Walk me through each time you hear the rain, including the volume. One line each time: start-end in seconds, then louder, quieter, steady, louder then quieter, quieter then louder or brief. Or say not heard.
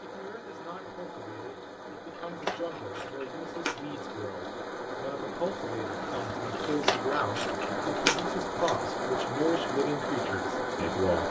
0.0-11.2 louder.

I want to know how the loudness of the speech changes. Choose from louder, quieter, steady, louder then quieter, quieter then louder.
louder.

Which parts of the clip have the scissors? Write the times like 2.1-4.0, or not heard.
2.1-3.8, 6.5-8.8.